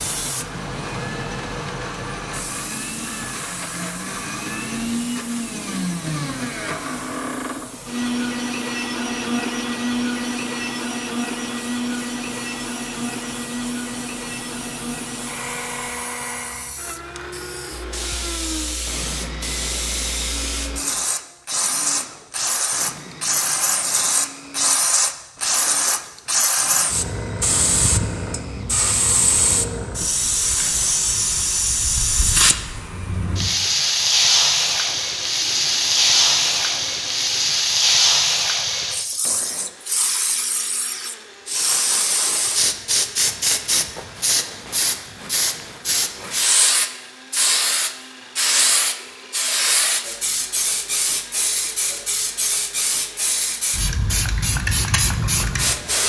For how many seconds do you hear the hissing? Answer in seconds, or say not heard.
56 s.